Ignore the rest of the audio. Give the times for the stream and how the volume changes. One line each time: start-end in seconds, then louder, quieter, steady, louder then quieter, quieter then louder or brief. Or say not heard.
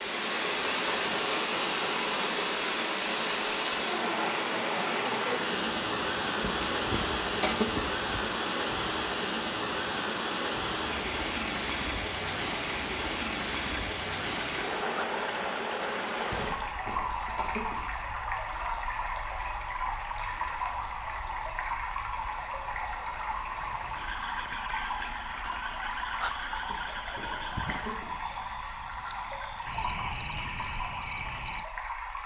0.0-32.2 quieter.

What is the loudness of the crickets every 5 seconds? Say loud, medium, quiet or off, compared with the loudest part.
off, off, off, medium, medium, loud, loud.